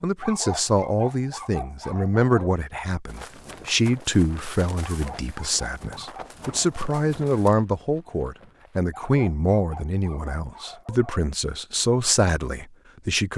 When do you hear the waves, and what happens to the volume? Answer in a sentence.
You can't hear the waves here.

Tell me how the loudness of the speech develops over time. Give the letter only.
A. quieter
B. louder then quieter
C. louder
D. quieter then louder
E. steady
E.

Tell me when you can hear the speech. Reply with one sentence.
The speech can be heard from 0.0 to 13.3 s.